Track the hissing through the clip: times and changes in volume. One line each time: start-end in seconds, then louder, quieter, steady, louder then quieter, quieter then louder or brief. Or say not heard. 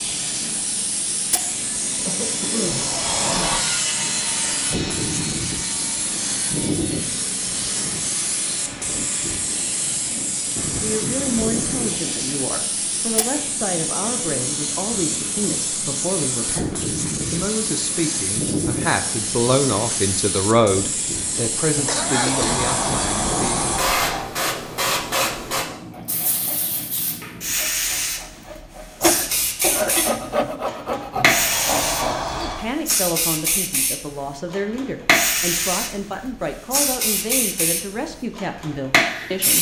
0.0-39.5 steady.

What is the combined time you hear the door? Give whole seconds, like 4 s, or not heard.
5 s.